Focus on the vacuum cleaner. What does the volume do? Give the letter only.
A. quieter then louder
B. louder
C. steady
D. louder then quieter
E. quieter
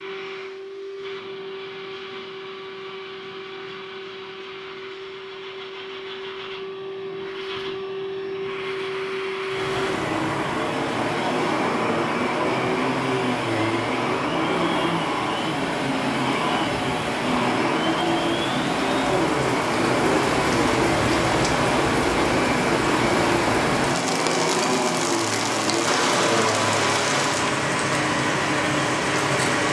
B.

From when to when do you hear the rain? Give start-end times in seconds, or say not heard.
9.4-29.6.